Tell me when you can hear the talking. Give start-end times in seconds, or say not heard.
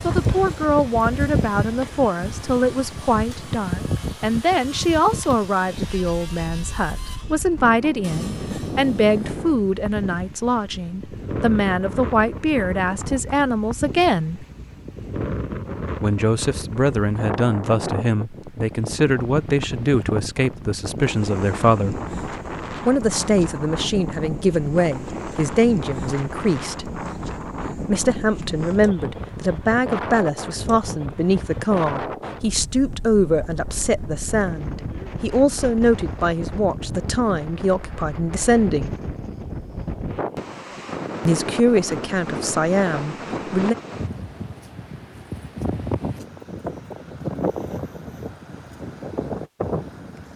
0.0-14.4, 16.0-22.0, 22.8-26.9, 27.9-39.0, 41.2-43.8.